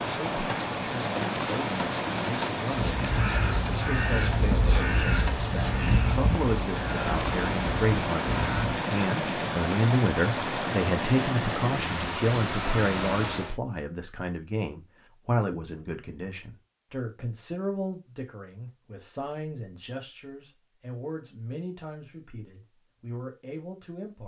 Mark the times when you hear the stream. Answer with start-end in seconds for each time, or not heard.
0.0-13.6.